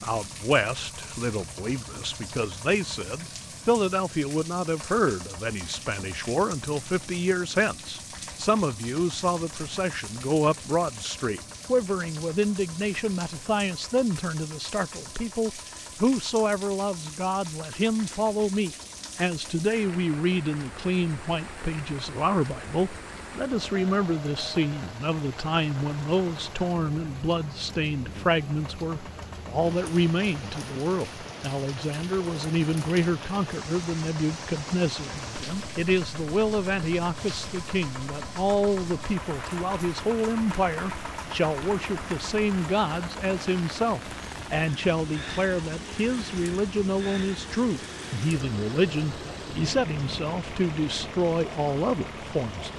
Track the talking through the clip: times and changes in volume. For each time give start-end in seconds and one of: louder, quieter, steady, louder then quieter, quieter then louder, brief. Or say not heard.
0.0-52.7 steady.